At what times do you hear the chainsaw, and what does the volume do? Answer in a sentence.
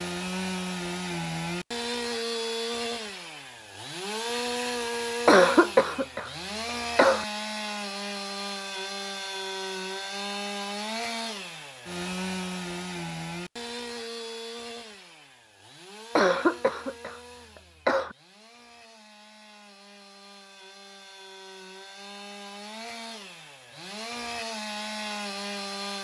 The chainsaw can be heard from 0.0 to 25.9 s, getting quieter then louder.